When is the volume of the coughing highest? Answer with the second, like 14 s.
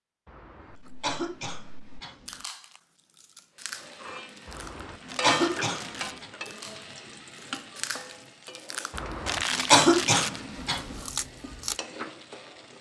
10 s.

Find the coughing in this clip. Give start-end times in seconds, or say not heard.
0.2-2.4, 4.5-6.2, 8.9-11.0.